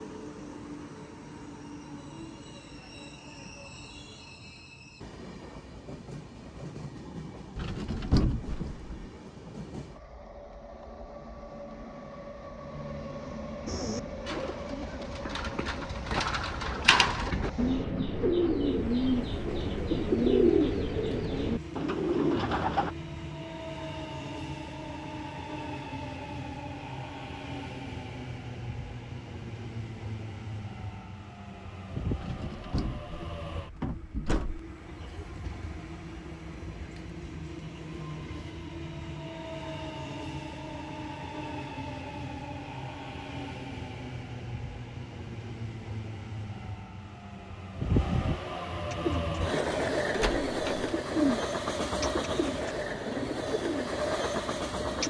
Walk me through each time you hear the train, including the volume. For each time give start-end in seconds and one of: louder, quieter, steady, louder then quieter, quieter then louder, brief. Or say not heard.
0.0-55.0 louder.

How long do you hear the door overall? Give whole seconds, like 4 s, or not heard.
5 s.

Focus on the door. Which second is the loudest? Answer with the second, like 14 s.
8 s.